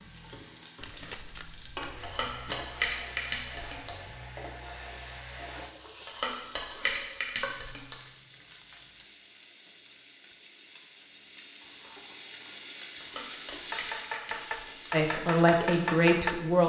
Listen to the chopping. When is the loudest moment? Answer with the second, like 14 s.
16 s.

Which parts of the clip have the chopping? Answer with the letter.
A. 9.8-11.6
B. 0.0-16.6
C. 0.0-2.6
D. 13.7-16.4
D.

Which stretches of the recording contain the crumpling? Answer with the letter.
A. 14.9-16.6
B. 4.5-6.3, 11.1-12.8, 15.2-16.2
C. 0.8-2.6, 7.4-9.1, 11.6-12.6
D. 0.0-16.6
C.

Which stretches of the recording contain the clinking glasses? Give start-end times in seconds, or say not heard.
2.0-3.9, 6.0-8.0, 13.0-14.9.